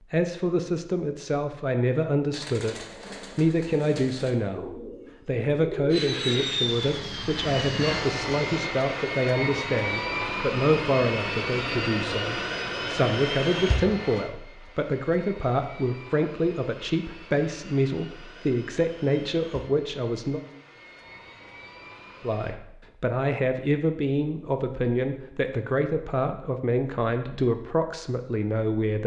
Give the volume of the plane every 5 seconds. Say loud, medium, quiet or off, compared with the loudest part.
off, loud, loud, quiet, quiet, off.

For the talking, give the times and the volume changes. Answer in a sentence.
You can hear the talking from 0.0 to 20.4 s, at a steady volume; and from 22.2 to 29.0 s, at a steady volume.